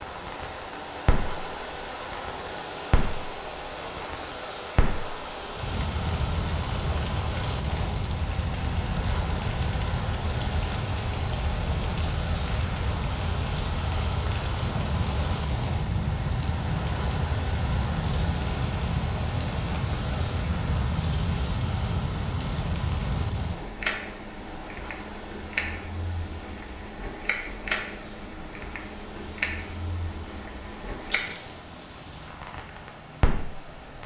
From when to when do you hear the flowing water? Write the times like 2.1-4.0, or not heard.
0.0-34.0.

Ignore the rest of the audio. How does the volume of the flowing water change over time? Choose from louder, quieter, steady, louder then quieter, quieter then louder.
quieter.